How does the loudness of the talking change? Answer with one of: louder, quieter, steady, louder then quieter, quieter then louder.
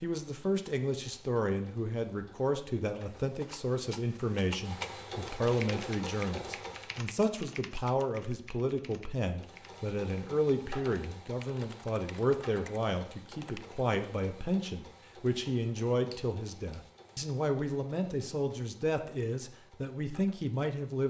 steady.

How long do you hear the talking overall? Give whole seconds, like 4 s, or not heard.
21 s.